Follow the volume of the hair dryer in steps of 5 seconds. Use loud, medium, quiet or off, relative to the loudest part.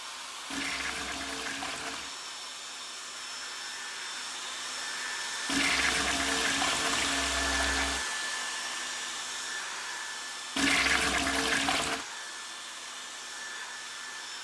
medium, loud, medium.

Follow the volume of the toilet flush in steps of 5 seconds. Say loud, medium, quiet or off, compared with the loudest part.
medium, loud, loud.